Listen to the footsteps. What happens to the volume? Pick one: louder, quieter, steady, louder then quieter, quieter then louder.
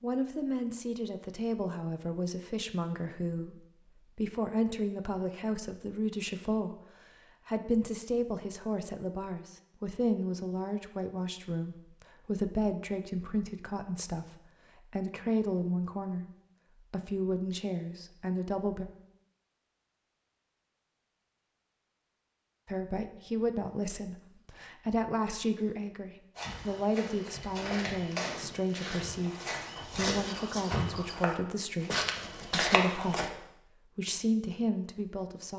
louder.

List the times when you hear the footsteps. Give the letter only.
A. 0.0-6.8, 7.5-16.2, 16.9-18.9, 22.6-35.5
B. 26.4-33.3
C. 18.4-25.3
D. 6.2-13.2
B.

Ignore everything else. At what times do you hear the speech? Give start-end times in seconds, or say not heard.
0.0-6.8, 7.5-16.2, 16.9-18.9, 22.6-35.5.